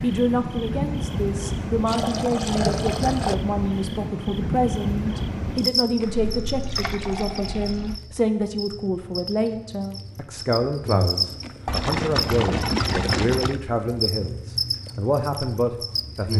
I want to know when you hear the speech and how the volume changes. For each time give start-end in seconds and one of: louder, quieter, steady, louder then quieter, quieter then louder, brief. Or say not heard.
0.0-16.3 steady.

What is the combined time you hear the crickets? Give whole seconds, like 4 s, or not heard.
16 s.